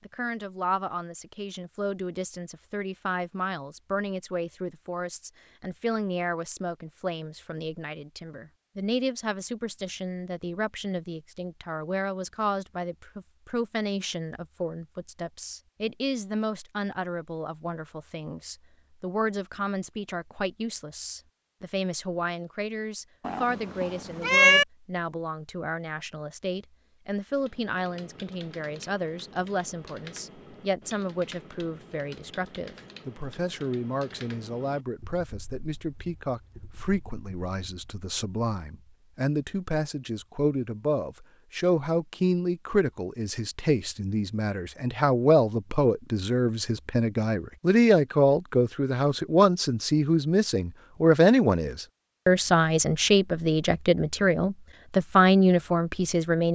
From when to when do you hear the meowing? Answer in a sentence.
The meowing can be heard from 23.2 to 24.6 s.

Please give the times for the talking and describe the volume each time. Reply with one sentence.
You can hear the talking from 0.1 to 56.5 s, getting louder.